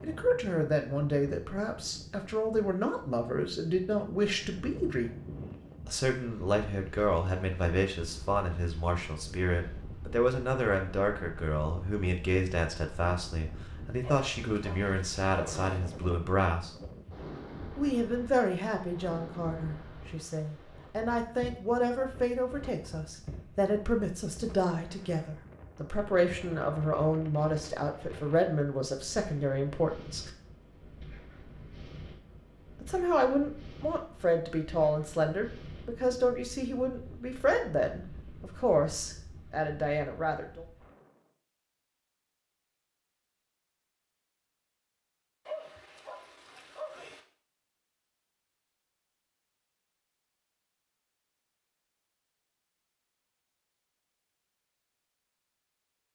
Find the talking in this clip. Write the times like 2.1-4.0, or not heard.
0.0-5.1, 5.8-16.8, 17.8-30.3, 32.8-40.6.